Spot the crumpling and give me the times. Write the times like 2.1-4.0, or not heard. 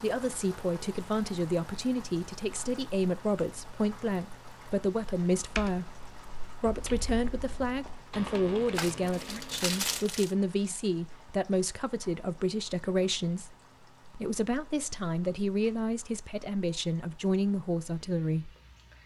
8.8-10.3.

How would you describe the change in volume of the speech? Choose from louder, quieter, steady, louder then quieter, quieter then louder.
steady.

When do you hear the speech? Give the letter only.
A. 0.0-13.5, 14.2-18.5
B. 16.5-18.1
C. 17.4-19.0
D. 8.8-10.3
A.